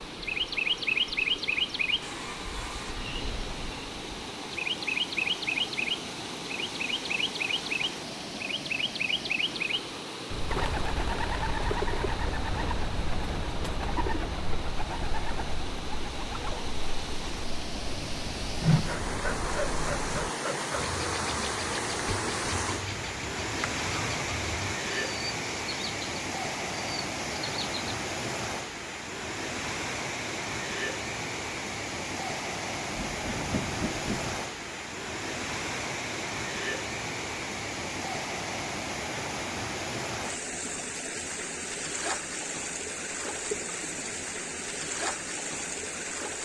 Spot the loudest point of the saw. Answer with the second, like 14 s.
19 s.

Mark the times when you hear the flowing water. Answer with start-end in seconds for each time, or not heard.
0.0-46.3.